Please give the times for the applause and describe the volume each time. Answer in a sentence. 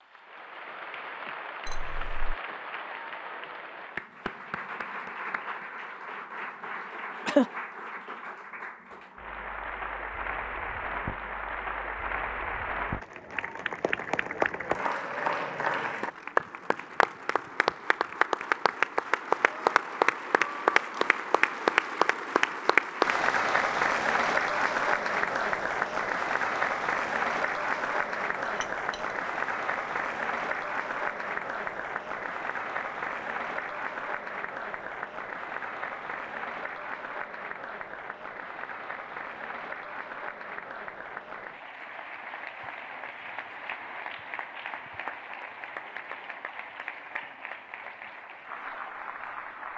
You can hear the applause from 0.0 to 49.7 s, getting louder then quieter.